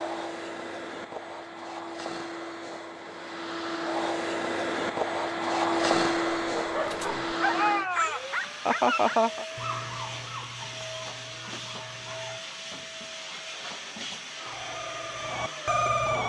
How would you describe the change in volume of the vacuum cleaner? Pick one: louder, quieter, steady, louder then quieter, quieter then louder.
louder then quieter.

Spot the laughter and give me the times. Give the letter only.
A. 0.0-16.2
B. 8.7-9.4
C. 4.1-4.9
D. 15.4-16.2
B.